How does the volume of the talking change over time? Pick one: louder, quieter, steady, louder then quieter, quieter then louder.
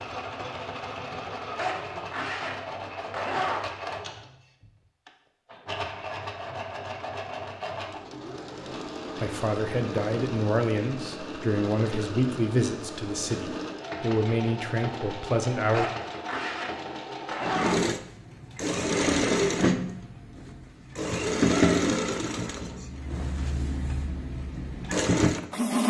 steady.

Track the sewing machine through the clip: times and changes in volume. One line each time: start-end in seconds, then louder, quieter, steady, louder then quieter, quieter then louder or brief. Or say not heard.
0.0-25.8 louder.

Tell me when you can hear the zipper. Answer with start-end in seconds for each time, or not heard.
1.6-3.6, 15.7-17.8.